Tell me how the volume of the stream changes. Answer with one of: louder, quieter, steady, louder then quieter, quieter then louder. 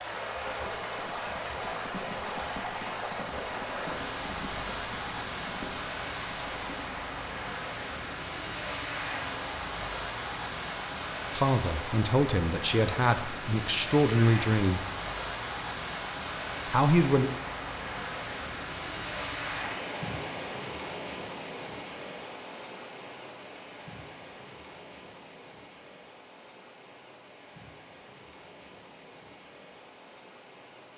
quieter.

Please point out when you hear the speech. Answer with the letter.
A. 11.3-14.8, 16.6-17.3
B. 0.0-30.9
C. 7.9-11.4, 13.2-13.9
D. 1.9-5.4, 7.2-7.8
A.